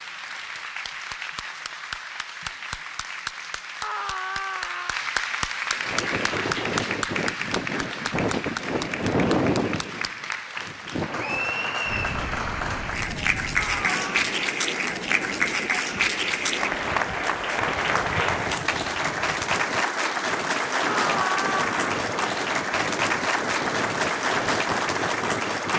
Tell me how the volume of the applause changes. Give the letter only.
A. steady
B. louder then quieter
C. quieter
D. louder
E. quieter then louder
D.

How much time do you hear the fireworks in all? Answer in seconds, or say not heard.
not heard.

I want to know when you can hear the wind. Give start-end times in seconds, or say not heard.
5.8-25.7.